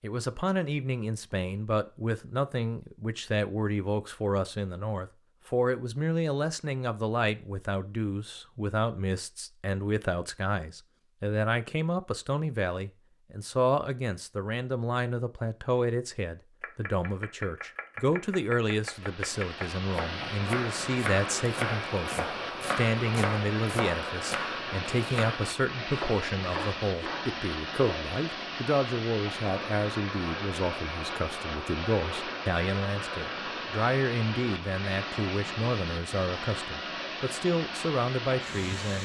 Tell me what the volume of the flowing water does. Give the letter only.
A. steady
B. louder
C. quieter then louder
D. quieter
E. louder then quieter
A.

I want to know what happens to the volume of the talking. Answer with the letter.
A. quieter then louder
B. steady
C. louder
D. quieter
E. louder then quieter
B.